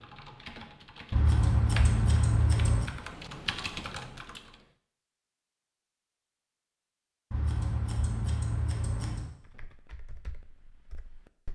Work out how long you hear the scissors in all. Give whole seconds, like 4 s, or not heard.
4 s.